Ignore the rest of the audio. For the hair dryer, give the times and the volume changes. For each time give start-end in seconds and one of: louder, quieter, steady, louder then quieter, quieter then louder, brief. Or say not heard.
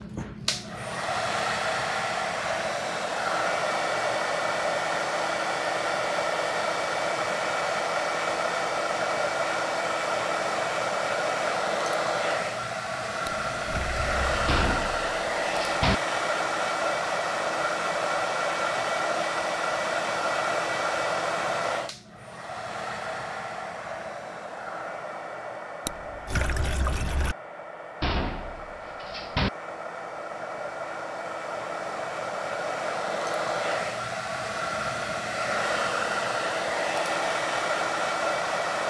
0.0-38.8 quieter then louder.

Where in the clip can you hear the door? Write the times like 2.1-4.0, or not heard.
14.4-15.9, 28.0-29.5.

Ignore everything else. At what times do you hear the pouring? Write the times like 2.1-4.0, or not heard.
13.2-14.6, 25.9-27.4.